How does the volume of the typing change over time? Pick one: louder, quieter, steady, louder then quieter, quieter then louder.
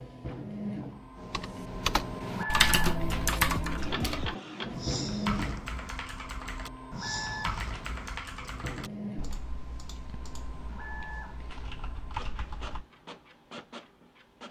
quieter.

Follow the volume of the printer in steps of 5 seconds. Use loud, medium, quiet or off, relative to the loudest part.
loud, loud, medium.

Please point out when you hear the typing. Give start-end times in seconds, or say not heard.
1.1-12.8.